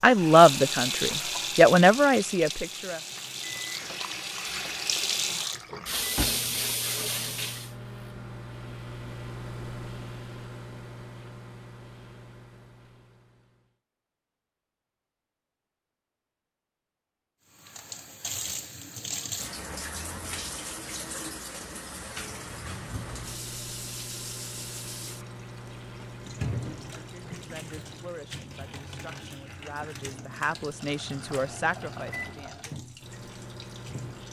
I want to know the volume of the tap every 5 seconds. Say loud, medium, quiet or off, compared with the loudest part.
loud, loud, off, medium, medium, medium, quiet.